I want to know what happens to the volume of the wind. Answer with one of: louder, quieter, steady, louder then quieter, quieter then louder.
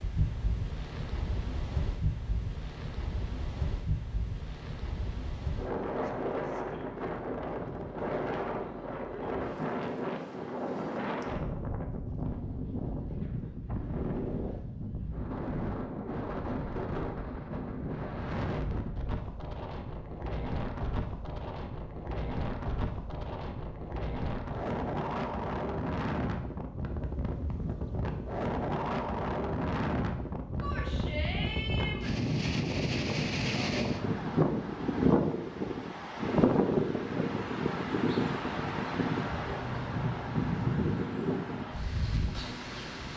louder.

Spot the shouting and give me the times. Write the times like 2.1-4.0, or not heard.
30.6-32.1.